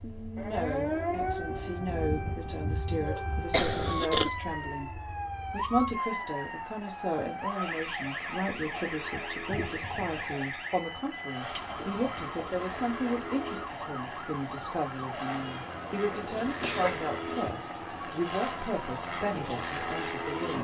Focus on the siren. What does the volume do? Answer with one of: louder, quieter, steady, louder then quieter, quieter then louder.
quieter.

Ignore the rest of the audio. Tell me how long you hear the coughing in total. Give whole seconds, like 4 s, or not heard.
3 s.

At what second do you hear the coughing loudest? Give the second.
4 s.